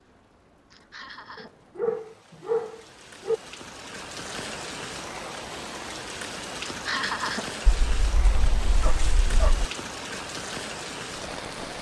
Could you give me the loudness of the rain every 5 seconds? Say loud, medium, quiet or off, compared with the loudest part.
medium, loud, loud.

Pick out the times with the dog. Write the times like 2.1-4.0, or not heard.
1.4-3.4, 7.7-9.7.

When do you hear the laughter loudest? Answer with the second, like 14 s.
7 s.